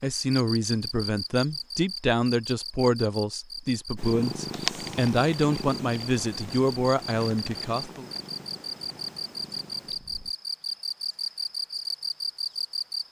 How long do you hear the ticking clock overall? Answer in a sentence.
You can't hear the ticking clock here.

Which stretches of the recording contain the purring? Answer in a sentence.
The purring can be heard from 4.0 to 10.3 s.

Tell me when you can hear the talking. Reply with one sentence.
You can hear the talking from 0.0 to 8.1 s.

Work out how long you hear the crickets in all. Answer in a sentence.
You can hear the crickets for 13 seconds altogether.